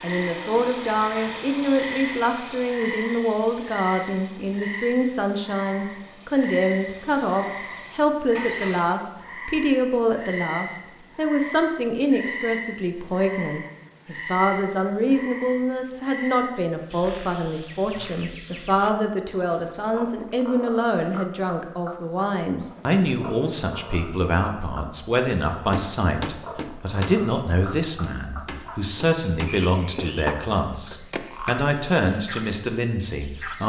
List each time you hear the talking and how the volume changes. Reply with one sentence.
The talking can be heard from 0.0 to 33.6 s, at a steady volume.